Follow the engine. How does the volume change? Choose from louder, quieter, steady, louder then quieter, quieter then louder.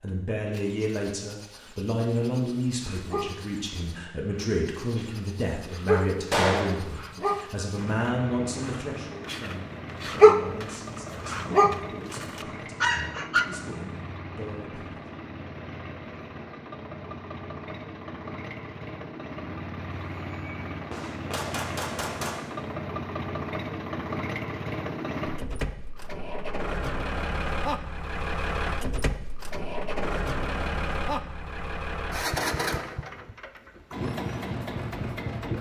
louder.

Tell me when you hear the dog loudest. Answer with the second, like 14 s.
10 s.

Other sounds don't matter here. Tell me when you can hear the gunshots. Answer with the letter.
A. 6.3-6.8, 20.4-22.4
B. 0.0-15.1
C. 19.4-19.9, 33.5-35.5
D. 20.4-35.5
A.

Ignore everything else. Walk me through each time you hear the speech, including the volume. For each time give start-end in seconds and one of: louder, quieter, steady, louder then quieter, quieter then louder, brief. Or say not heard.
0.0-15.1 quieter.